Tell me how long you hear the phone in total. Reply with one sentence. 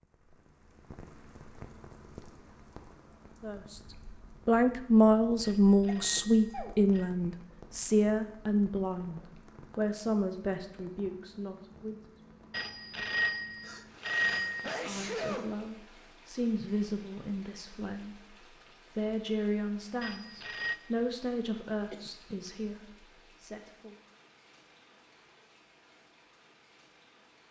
You can hear the phone for 5 seconds altogether.